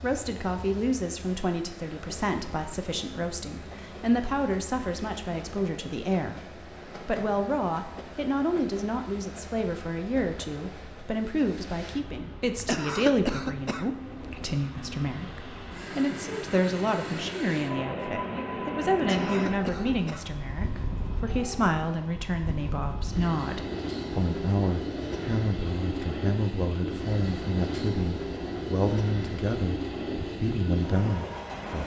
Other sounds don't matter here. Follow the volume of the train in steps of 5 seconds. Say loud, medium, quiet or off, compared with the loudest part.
medium, medium, medium, loud, loud, loud, loud.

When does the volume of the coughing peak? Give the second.
13 s.